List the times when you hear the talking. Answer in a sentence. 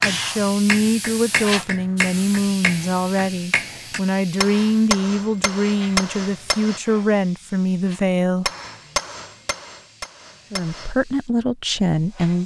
You can hear the talking from 0.0 to 8.5 s and from 10.5 to 12.4 s.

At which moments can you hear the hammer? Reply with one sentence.
The hammer can be heard from 0.0 to 6.8 s and from 8.4 to 10.9 s.